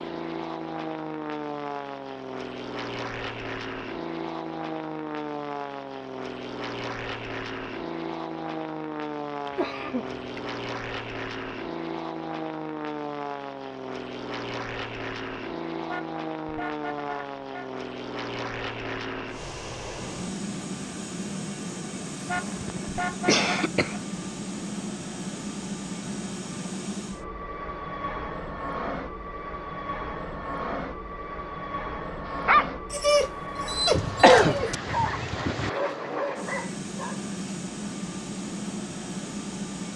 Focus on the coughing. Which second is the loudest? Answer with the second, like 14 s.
34 s.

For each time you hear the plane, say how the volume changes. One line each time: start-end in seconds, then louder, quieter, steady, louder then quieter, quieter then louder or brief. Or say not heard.
0.0-39.9 steady.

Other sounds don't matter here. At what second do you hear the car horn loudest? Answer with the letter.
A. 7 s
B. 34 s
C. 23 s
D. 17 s
C.